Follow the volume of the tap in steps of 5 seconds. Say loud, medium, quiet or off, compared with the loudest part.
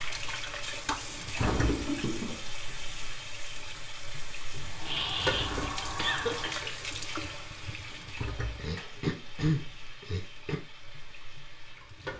loud, loud, medium.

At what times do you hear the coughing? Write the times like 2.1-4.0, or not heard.
1.5-2.4, 4.8-6.6, 8.6-10.6.